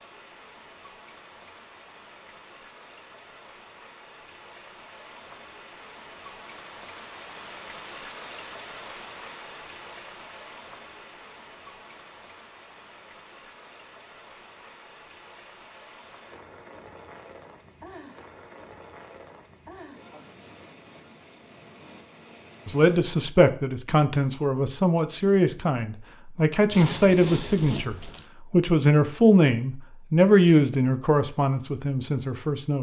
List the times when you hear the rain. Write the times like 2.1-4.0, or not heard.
0.0-23.0.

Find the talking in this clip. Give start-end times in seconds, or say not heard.
22.6-32.7.